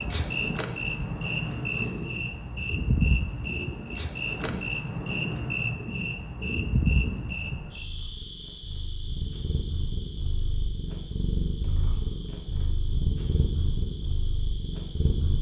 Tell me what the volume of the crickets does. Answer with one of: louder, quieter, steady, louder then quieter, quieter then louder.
quieter.